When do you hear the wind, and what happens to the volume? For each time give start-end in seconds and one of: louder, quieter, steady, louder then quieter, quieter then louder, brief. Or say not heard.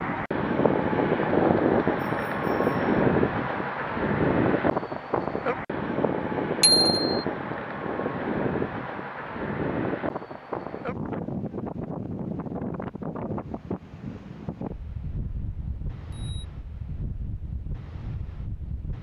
0.0-18.9 quieter.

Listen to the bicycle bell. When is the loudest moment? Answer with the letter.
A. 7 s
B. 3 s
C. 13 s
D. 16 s
A.